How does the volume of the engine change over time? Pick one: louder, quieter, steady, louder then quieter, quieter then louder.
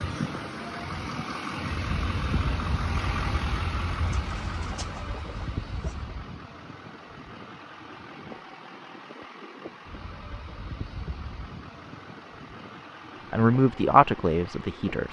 quieter.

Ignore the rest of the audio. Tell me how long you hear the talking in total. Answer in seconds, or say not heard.
2 s.